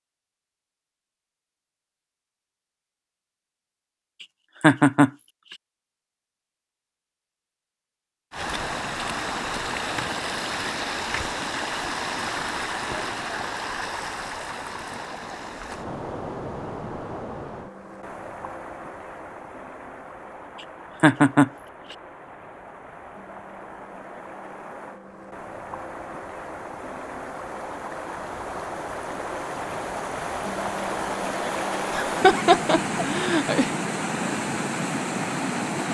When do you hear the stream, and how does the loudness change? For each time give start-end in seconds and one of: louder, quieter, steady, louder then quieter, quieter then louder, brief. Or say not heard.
8.3-35.9 quieter then louder.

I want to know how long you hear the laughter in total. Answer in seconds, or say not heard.
3 s.